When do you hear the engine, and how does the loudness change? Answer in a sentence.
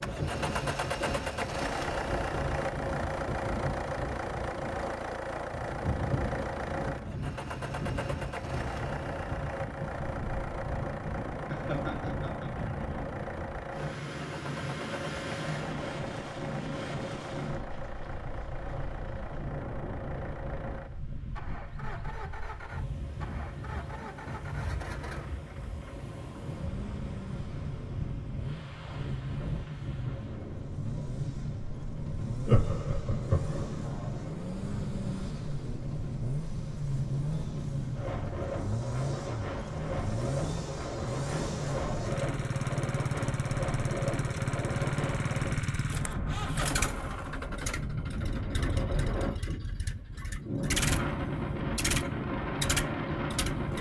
The engine can be heard from 0.0 to 53.7 s, getting quieter then louder.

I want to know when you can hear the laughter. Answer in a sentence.
You can hear the laughter from 11.5 to 12.5 s and from 32.4 to 33.8 s.